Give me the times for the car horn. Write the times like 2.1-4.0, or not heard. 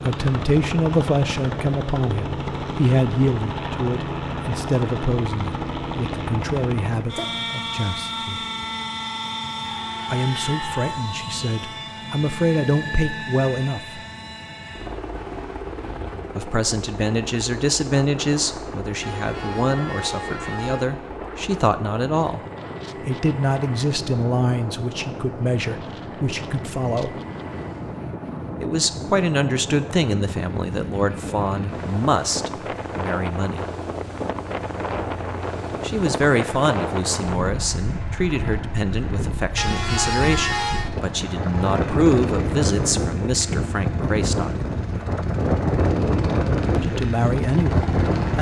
9.7-10.8, 19.0-20.9, 39.5-40.9.